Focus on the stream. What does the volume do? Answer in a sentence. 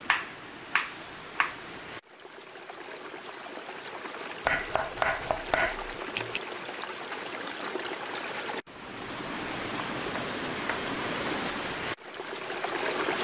The volume of the stream goes up.